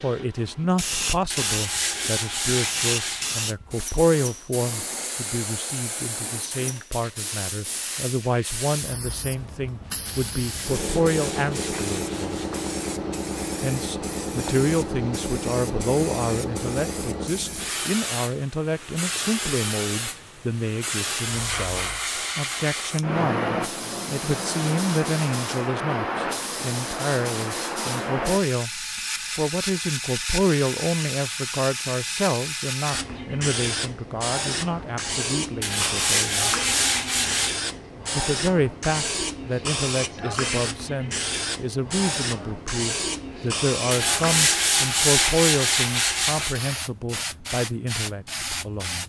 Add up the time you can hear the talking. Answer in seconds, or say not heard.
46 s.